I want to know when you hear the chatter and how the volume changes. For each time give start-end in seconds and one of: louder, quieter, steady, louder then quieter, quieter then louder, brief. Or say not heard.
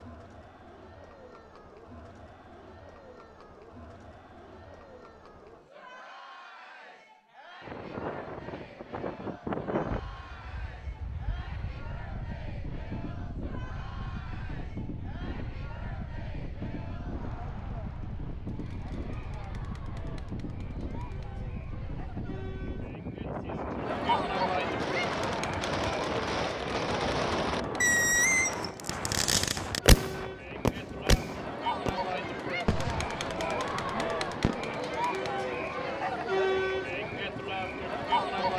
0.0-38.5 louder.